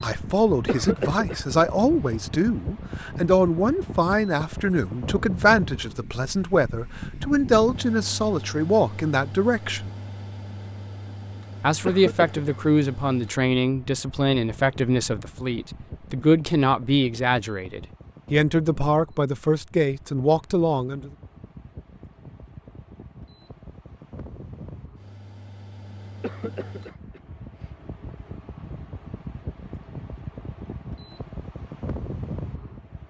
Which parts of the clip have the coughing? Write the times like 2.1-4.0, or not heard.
0.7-2.1, 11.8-12.7, 26.2-27.7.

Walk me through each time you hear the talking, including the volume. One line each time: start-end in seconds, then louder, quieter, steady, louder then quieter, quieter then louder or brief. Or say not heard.
0.0-9.9 steady
11.6-21.1 steady.